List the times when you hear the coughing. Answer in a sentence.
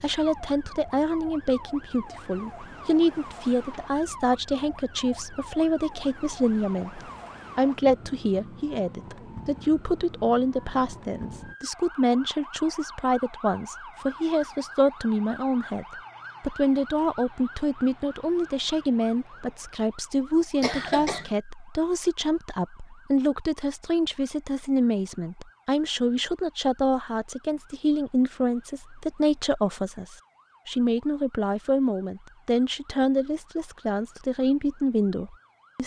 You can hear the coughing from 20.6 to 21.3 s.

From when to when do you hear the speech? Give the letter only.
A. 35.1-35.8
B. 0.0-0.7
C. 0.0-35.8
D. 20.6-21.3
C.